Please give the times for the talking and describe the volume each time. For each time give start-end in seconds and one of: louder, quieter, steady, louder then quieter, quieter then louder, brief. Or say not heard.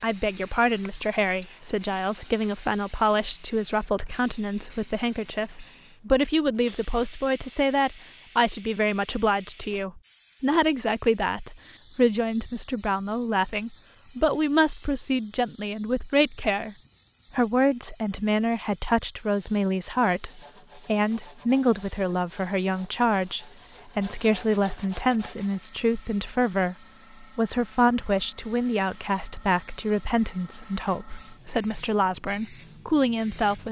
0.0-16.8 steady
17.4-33.6 steady.